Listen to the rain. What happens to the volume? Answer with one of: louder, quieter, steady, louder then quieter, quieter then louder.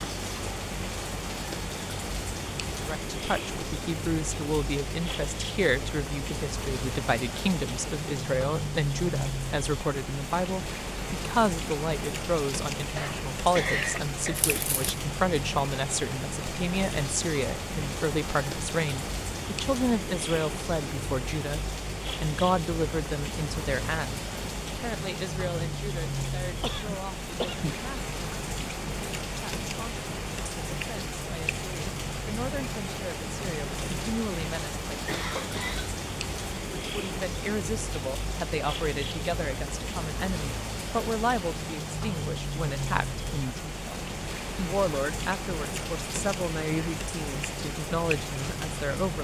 steady.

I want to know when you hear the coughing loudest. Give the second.
14 s.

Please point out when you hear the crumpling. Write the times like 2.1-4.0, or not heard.
14.3-14.9.